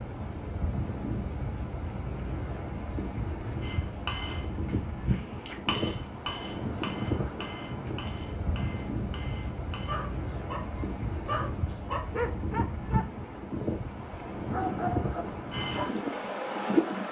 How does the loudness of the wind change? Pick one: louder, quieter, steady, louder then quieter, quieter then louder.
steady.